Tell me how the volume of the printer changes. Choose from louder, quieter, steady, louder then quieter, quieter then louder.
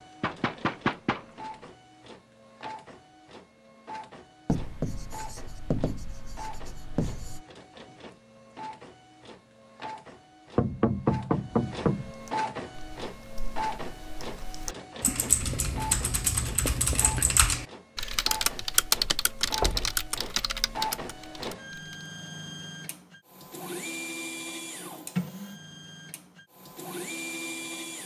louder.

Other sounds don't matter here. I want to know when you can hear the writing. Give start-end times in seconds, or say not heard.
4.5-7.5, 15.3-17.4.